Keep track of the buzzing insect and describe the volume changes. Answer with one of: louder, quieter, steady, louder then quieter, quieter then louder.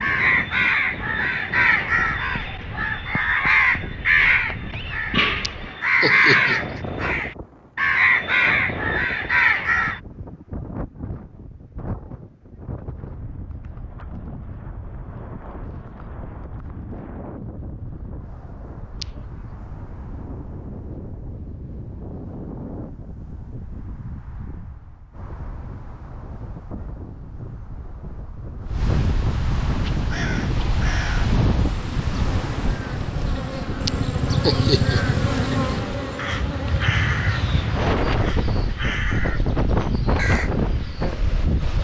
louder then quieter.